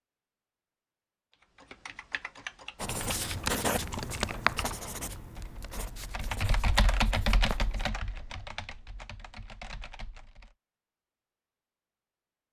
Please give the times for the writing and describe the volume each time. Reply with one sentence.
You can hear the writing from 2.8 to 8.2 s, getting quieter.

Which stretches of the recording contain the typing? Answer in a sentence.
The typing can be heard from 1.4 to 10.6 s.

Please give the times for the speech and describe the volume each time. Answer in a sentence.
You can't hear the speech here.